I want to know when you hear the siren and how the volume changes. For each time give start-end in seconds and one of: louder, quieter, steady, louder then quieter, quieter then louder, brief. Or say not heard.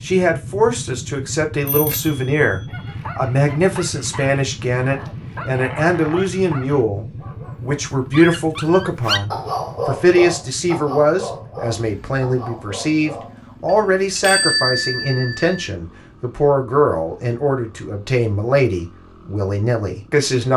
not heard.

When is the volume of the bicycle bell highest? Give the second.
15 s.